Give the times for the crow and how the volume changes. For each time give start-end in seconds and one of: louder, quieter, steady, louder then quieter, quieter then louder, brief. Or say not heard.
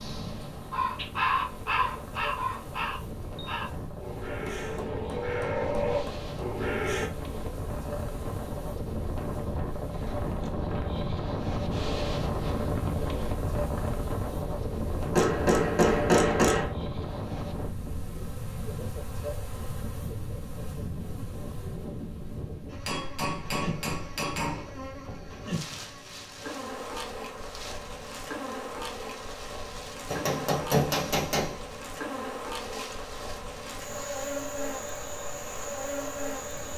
0.0-7.1 quieter then louder.